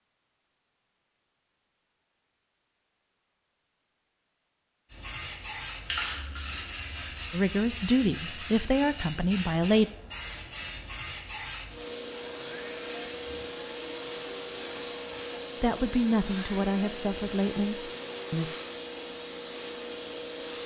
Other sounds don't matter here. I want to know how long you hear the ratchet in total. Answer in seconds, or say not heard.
not heard.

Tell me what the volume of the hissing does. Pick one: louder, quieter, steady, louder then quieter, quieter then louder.
steady.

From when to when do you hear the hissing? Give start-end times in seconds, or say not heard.
4.9-20.6.